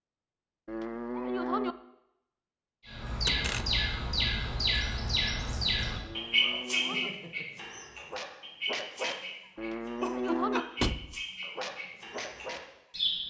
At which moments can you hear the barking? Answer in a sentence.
The barking can be heard from 6.2 to 9.2 s, from 10.0 to 10.7 s and from 11.4 to 12.7 s.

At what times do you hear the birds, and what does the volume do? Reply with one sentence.
The birds can be heard from 2.9 to 13.2 s, getting quieter.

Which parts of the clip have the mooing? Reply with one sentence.
You can hear the mooing from 0.7 to 1.8 s, from 6.0 to 7.1 s and from 9.6 to 10.7 s.